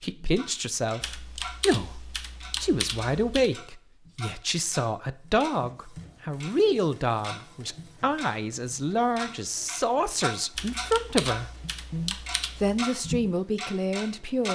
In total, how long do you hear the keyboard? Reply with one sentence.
The keyboard can be heard for 5 seconds in total.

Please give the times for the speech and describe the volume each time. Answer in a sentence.
The speech can be heard from 0.0 to 14.5 s, at a steady volume.